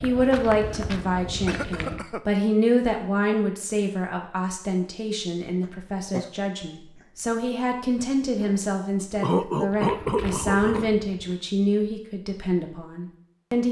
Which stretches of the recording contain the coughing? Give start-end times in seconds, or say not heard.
1.4-2.2, 5.6-6.3, 9.2-10.9.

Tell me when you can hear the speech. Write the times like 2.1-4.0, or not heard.
0.0-13.6.